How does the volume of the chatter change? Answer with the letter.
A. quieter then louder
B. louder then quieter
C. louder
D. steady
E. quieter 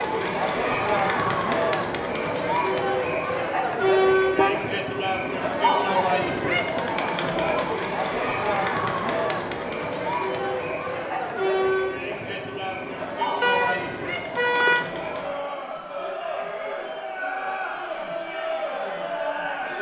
E.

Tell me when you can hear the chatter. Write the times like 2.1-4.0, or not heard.
0.0-19.7.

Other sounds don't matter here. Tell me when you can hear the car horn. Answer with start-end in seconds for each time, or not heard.
3.8-4.8, 13.4-14.8.